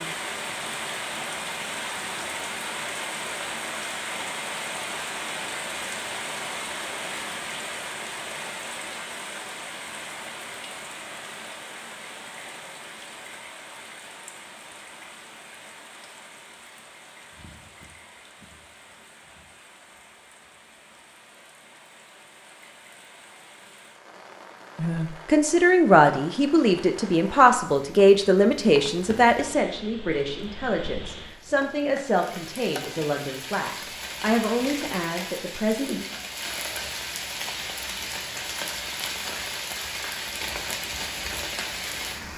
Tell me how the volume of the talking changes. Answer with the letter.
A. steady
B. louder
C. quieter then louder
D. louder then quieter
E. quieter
E.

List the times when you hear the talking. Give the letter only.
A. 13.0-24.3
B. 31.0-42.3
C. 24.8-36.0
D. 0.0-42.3
C.